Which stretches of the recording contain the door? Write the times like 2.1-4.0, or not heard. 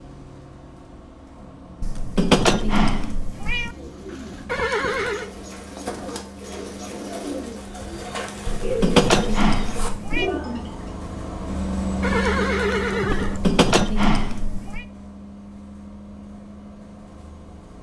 not heard.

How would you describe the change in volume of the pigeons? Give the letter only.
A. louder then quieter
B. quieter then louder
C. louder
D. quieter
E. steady
C.